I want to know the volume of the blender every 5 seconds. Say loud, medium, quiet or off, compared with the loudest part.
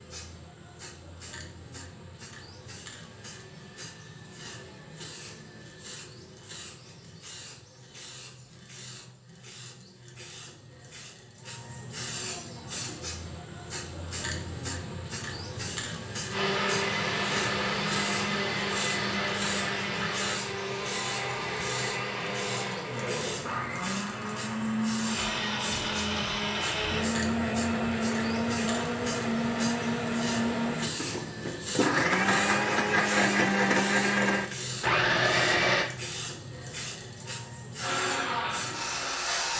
off, off, off, loud, medium, loud, loud, loud.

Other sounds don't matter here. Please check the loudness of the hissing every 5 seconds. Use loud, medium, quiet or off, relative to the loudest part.
medium, medium, loud, loud, loud, loud, loud, loud.